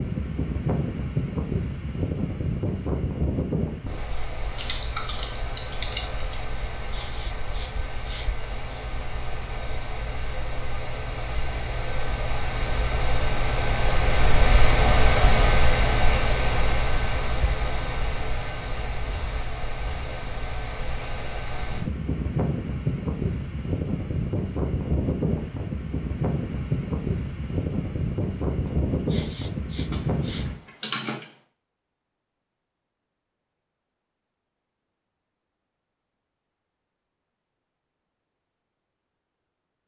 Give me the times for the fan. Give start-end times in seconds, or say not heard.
0.0-30.6.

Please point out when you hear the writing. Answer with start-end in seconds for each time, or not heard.
not heard.